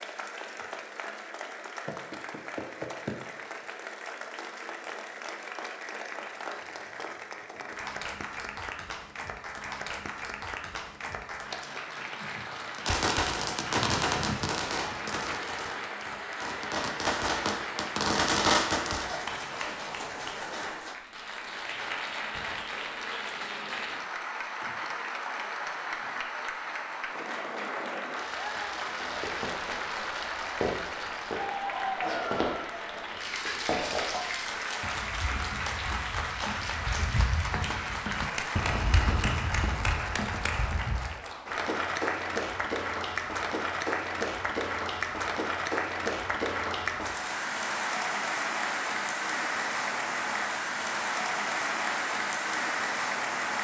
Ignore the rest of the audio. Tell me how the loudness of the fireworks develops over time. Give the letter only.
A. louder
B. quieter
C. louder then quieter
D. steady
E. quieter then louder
E.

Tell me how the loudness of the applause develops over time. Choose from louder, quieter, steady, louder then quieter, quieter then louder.
louder.